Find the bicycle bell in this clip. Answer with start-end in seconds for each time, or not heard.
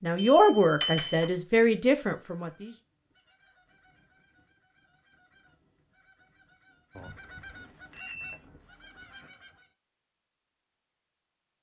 0.1-1.3, 7.0-8.4.